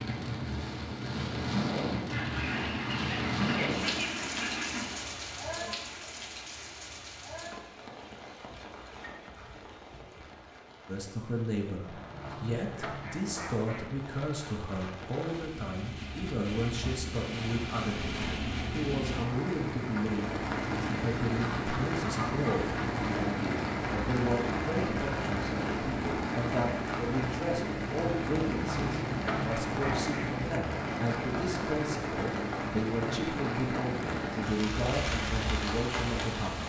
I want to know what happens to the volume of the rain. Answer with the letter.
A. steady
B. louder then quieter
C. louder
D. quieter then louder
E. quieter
D.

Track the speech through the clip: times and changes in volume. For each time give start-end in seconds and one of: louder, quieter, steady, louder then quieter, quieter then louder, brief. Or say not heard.
10.8-36.6 steady.